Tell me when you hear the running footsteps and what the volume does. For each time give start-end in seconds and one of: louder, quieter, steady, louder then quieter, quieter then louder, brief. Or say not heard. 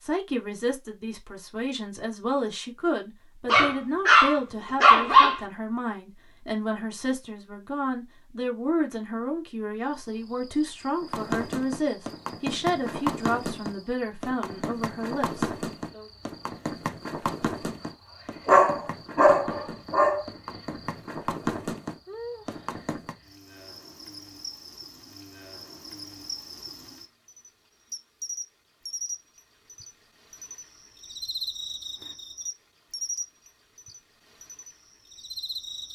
11.0-23.1 quieter then louder.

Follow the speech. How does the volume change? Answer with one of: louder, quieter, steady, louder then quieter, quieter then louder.
steady.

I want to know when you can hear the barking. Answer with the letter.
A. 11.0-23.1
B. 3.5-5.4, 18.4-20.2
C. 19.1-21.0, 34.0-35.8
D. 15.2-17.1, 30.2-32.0
B.